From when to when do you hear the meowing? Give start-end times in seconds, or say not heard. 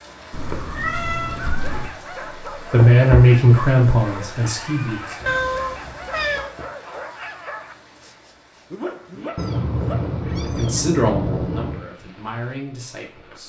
0.3-1.9, 5.2-6.5, 9.3-11.8.